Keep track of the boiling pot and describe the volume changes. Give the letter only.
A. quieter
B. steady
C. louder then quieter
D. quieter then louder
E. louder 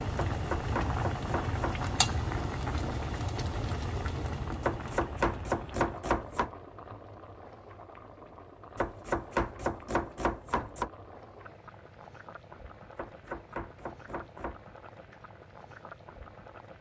A.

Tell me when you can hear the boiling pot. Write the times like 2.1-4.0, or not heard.
0.0-16.7.